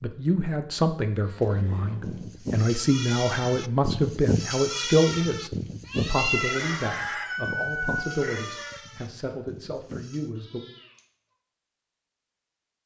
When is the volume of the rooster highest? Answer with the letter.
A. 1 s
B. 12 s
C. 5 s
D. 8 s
D.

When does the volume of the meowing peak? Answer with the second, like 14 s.
6 s.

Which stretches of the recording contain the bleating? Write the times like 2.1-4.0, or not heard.
1.2-10.3.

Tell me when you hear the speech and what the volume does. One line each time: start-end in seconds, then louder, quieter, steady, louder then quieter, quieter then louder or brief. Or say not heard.
0.0-10.6 quieter.